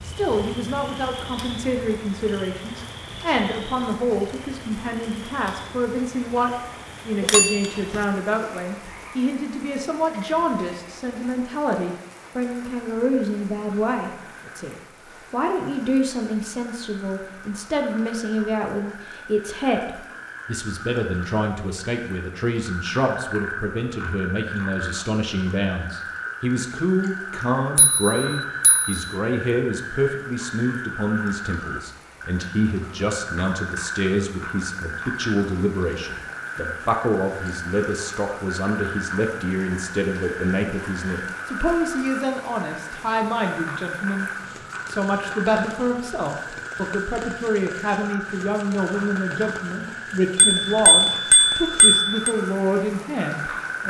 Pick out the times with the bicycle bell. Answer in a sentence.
The bicycle bell can be heard from 7.2 to 8.0 s, from 27.8 to 29.0 s and from 50.4 to 52.4 s.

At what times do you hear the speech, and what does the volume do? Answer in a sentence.
You can hear the speech from 0.0 to 53.8 s, at a steady volume.